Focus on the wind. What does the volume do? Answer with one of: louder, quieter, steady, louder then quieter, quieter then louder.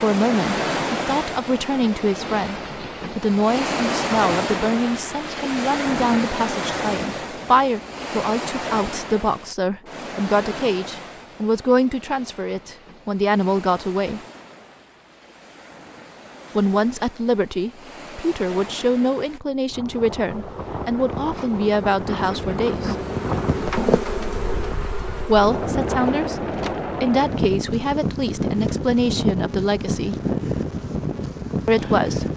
quieter then louder.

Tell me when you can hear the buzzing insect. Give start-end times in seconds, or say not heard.
19.8-32.3.